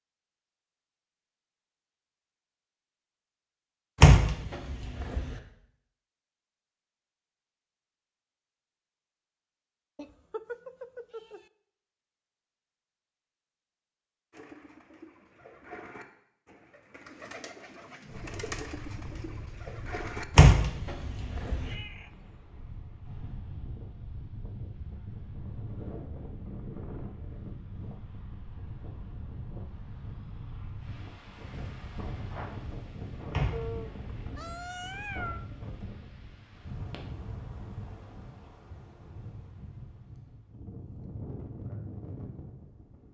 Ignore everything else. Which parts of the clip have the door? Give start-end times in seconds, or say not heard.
4.0-5.3, 20.4-21.8, 33.3-34.7.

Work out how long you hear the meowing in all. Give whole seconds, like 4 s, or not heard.
4 s.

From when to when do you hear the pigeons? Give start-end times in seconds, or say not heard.
14.3-20.2.